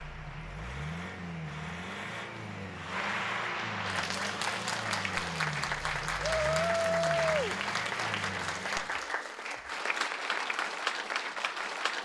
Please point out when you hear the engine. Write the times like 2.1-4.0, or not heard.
0.0-9.0.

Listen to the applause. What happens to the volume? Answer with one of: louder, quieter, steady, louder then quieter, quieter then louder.
louder.